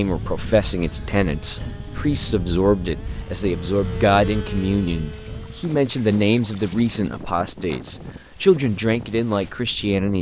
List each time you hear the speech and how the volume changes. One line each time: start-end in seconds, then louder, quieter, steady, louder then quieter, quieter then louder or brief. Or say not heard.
0.0-10.1 steady.